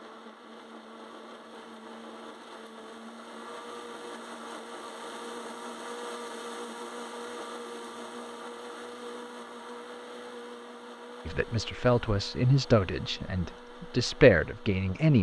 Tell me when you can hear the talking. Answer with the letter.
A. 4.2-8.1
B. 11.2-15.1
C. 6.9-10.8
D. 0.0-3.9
B.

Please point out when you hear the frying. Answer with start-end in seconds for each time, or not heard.
not heard.